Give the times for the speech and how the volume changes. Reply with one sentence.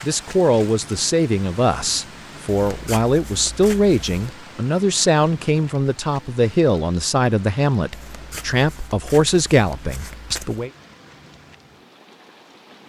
The speech can be heard from 0.0 to 10.7 s, at a steady volume.